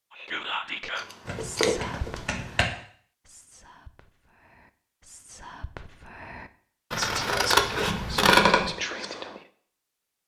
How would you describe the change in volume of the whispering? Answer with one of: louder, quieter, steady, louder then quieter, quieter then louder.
quieter then louder.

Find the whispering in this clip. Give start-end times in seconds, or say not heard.
0.1-9.4.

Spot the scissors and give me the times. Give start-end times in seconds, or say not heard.
0.9-2.2, 6.9-8.4.